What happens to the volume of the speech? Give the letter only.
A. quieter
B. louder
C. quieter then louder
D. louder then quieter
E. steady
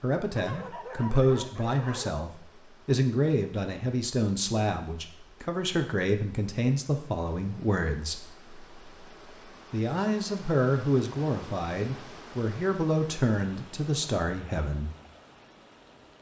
E.